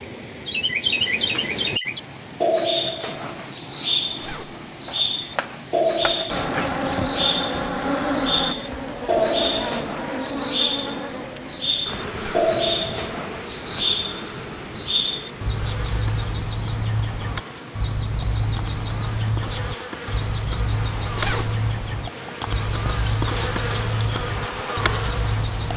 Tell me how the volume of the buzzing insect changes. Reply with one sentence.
The loudness of the buzzing insect goes down, then up.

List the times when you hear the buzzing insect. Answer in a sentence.
The buzzing insect can be heard from 6.2 to 25.7 s.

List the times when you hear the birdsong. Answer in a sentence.
The birdsong can be heard from 0.5 to 25.7 s.